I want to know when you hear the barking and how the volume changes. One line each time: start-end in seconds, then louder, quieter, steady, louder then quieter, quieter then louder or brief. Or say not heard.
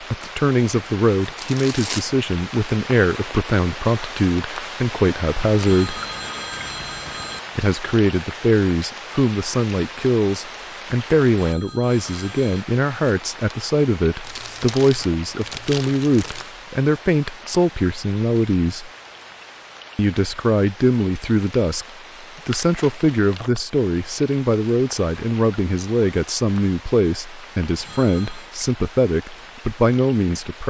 not heard.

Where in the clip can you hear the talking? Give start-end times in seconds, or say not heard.
0.1-6.0, 7.5-18.9, 19.9-21.9, 22.4-30.6.